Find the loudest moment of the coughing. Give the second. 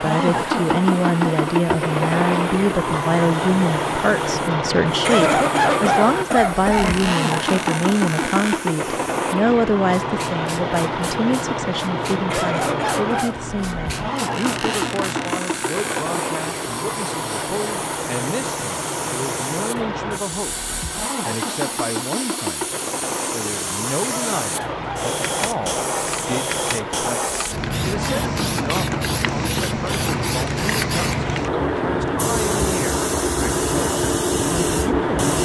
5 s.